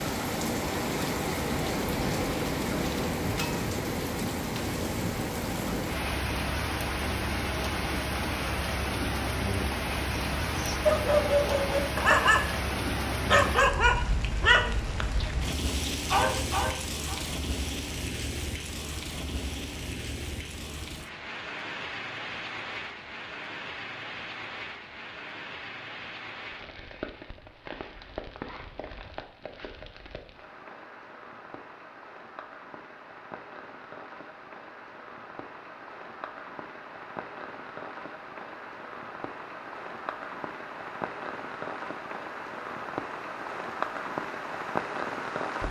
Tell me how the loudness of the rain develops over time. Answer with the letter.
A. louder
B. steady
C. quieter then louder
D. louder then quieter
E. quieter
C.